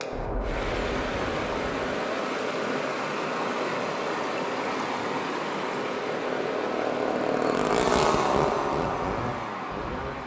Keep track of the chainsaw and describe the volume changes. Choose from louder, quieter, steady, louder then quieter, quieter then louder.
louder.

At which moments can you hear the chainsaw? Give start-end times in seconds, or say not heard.
0.0-10.2.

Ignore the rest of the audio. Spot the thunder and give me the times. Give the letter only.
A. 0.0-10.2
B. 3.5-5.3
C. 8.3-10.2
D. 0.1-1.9
D.